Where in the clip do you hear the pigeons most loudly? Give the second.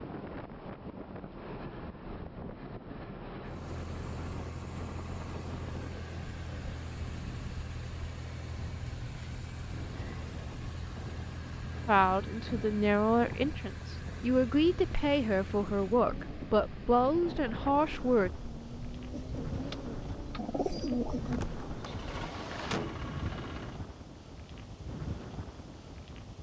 21 s.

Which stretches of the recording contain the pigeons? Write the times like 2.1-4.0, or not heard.
19.1-21.4.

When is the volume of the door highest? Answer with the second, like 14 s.
23 s.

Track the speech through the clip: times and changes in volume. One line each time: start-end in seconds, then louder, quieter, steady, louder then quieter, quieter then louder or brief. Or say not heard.
11.8-18.3 steady.